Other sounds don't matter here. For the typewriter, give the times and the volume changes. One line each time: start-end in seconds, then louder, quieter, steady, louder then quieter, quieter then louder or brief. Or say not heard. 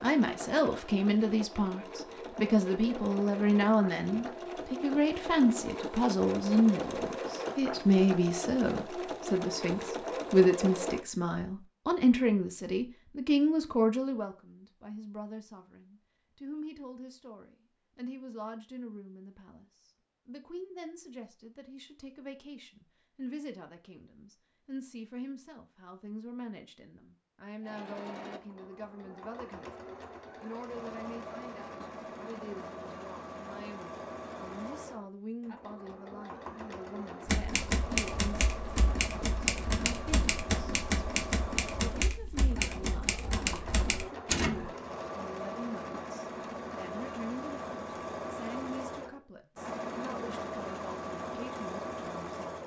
37.2-44.7 steady.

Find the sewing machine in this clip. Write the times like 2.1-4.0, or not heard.
0.0-11.1, 27.6-52.6.